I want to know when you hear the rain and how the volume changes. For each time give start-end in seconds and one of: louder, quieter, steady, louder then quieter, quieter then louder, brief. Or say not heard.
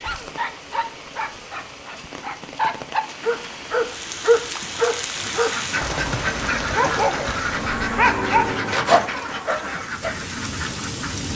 0.0-11.3 louder.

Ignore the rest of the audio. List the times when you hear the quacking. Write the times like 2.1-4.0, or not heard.
5.2-11.3.